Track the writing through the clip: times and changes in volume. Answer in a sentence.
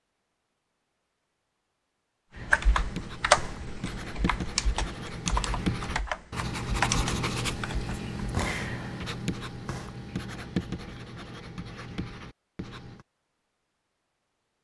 You can hear the writing from 2.3 to 13.1 s, getting louder then quieter.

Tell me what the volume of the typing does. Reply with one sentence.
The loudness of the typing goes down, then up.